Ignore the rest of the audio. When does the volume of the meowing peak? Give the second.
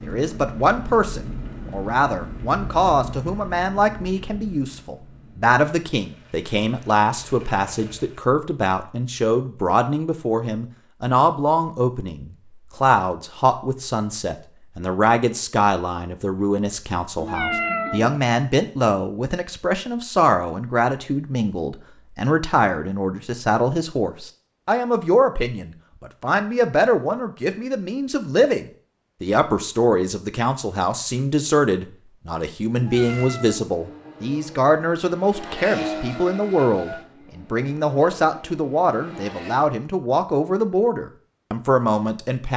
18 s.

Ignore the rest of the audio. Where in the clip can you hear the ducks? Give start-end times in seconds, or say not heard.
not heard.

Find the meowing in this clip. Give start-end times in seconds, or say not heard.
17.1-18.2, 32.8-33.7.